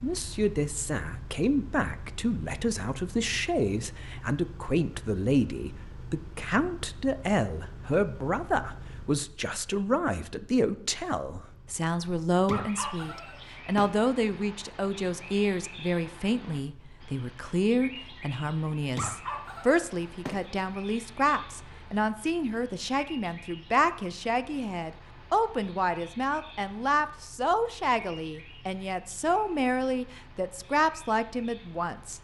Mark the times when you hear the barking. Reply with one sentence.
You can hear the barking from 12.4 to 14.0 s and from 18.9 to 20.4 s.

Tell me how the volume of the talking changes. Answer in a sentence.
The loudness of the talking stays about the same.